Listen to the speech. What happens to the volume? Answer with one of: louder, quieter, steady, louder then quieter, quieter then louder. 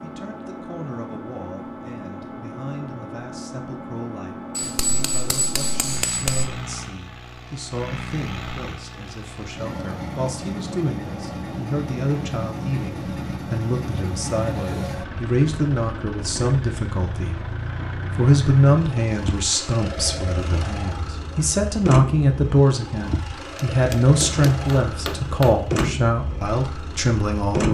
louder.